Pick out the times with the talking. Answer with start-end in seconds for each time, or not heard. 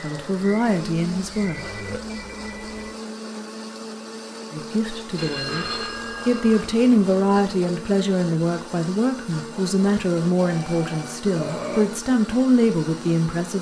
0.0-1.6, 4.5-13.5.